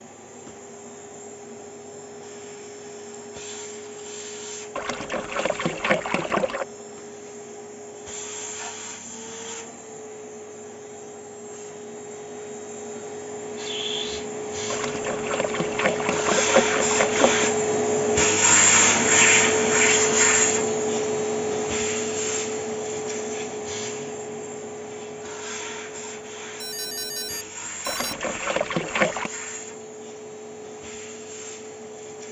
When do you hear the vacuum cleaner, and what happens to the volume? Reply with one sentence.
The vacuum cleaner can be heard from 0.0 to 32.2 s, getting louder then quieter.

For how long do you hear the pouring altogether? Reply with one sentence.
The pouring can be heard for 6 seconds in total.